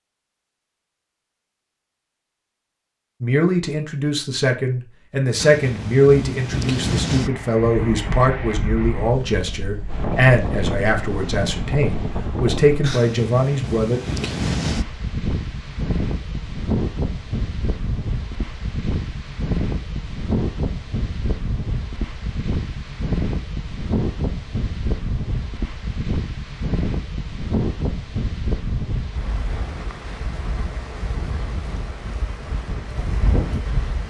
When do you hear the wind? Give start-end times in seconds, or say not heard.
5.3-34.0.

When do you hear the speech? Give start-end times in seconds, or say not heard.
3.2-14.0.